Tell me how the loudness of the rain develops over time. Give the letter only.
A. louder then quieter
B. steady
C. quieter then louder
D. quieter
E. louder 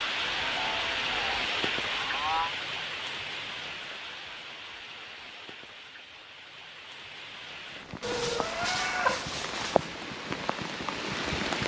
C.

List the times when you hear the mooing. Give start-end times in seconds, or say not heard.
0.2-2.5, 8.0-9.9.